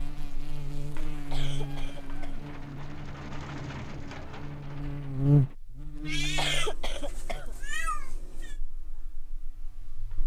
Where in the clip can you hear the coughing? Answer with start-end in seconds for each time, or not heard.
1.1-2.5, 6.2-7.5.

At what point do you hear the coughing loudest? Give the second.
7 s.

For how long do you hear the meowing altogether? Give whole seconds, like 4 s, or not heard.
4 s.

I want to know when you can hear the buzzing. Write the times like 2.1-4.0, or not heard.
0.0-10.2.